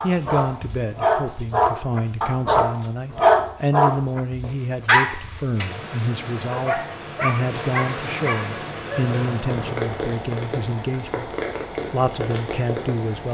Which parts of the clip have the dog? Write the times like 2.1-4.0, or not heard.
0.0-9.8.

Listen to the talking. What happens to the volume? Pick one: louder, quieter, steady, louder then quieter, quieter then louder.
steady.